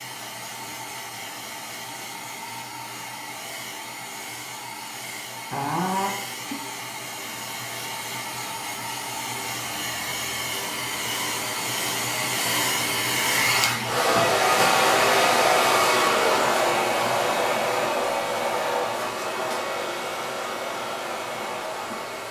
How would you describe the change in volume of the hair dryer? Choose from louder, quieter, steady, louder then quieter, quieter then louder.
louder then quieter.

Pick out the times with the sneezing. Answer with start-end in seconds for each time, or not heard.
5.5-6.6.